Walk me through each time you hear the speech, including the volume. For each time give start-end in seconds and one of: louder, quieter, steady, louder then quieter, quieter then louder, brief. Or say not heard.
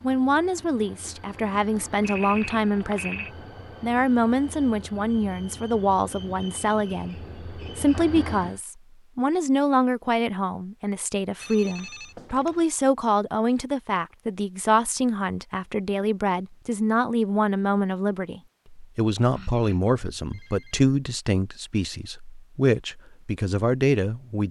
0.0-24.4 steady.